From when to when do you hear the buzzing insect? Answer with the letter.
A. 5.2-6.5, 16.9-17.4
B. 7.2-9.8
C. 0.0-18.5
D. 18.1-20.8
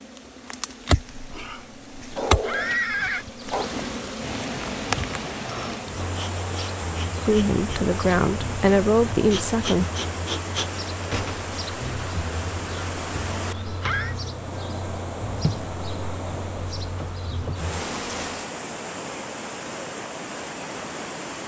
C.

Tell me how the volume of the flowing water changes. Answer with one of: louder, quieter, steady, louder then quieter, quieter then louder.
steady.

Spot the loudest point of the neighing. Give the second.
3 s.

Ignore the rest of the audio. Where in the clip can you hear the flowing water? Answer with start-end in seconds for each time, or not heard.
3.5-21.4.